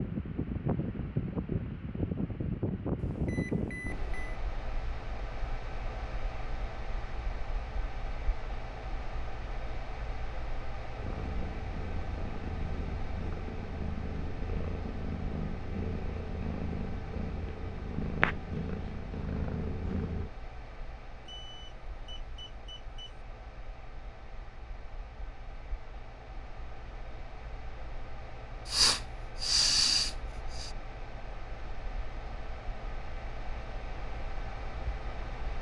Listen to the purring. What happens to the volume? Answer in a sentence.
The volume of the purring goes up.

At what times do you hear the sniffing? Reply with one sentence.
The sniffing can be heard from 28.6 to 30.7 s.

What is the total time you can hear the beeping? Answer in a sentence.
You can hear the beeping for 3 seconds altogether.